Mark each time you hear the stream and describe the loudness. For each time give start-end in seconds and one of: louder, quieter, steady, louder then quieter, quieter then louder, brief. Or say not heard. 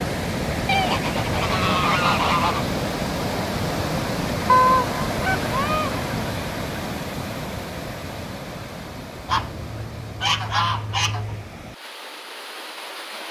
0.0-13.2 quieter.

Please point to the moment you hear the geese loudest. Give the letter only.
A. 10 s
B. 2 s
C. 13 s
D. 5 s
D.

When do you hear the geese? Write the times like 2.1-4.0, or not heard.
0.7-2.6, 4.5-6.0, 9.2-11.4.